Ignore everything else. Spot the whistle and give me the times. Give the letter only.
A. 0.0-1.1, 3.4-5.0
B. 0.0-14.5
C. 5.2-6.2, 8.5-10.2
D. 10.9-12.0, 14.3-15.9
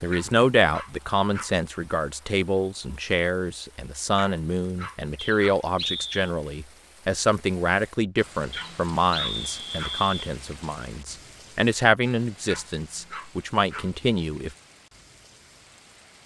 C.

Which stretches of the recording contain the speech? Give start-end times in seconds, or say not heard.
0.0-14.5.